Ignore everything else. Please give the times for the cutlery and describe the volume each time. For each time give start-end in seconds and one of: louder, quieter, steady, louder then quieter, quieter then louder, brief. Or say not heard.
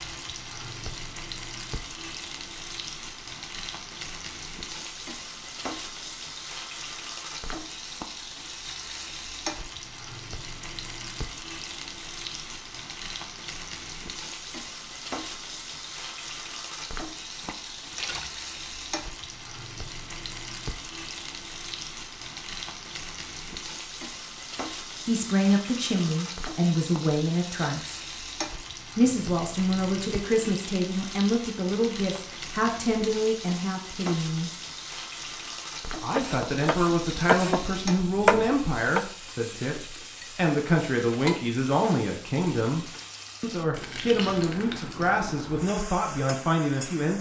not heard.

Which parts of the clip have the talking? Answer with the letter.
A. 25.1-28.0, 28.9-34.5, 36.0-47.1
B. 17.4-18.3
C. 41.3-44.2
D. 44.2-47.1
A.